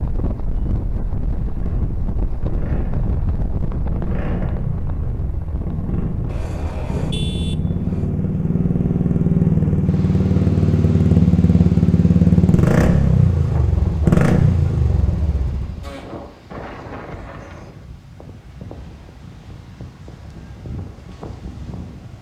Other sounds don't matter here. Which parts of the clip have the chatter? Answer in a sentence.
The chatter can't be heard in this clip.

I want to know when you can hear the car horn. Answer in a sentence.
The car horn can be heard from 6.2 to 8.1 s.